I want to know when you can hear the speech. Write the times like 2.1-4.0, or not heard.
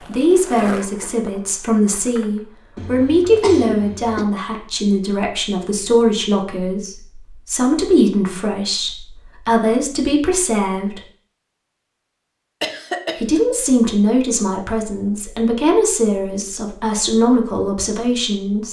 0.1-11.0, 13.2-18.6.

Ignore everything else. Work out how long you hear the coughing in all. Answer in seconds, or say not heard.
2 s.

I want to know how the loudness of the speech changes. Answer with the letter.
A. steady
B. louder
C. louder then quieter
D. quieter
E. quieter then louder
A.